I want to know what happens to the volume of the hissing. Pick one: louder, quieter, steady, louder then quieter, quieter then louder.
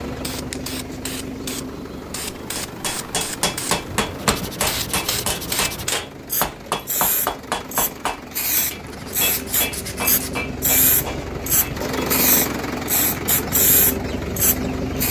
louder.